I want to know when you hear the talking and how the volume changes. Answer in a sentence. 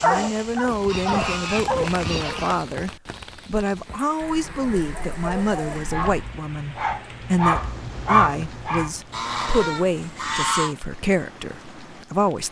You can hear the talking from 0.0 to 12.4 s, at a steady volume.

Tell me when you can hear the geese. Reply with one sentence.
You can hear the geese from 0.7 to 2.6 s, from 4.2 to 6.1 s and from 9.1 to 10.8 s.